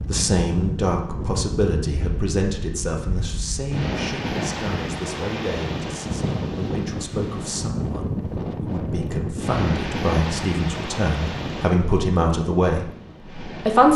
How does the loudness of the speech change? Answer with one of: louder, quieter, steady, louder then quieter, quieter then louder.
quieter then louder.